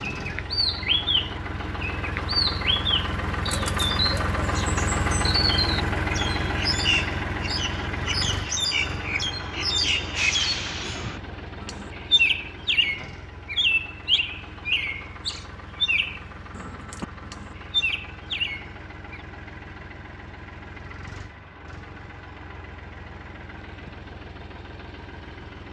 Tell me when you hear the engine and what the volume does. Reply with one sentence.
The engine can be heard from 0.0 to 25.6 s, getting quieter.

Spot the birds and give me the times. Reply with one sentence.
You can hear the birds from 0.1 to 19.2 s.